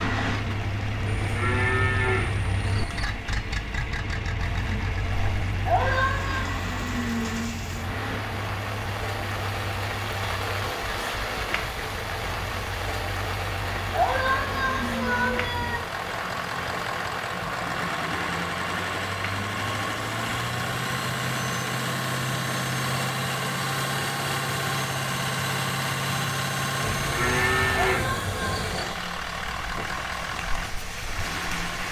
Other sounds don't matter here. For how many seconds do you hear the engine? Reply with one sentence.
You can hear the engine for 32 seconds altogether.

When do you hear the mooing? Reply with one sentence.
You can hear the mooing from 1.1 to 3.1 s and from 26.8 to 28.9 s.